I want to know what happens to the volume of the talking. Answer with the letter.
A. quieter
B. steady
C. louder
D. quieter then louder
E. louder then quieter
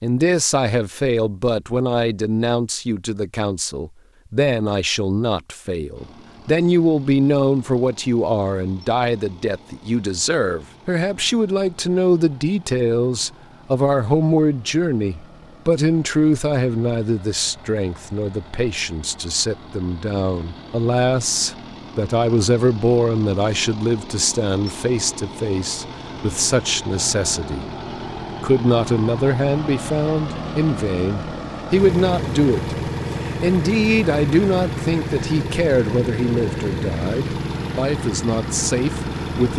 B.